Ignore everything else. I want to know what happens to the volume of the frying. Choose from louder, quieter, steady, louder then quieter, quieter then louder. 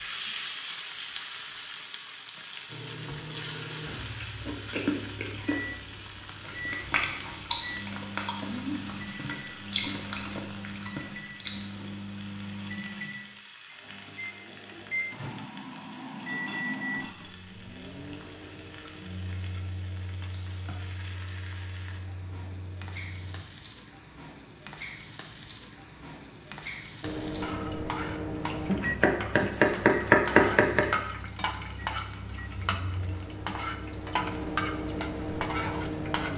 quieter then louder.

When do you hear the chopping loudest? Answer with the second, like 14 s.
30 s.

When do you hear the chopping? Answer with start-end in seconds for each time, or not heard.
28.6-30.9.